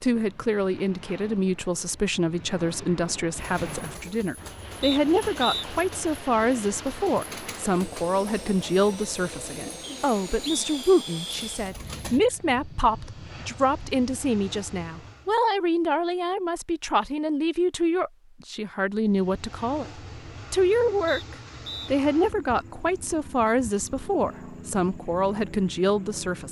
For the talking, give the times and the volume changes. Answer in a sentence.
You can hear the talking from 0.0 to 26.4 s, at a steady volume.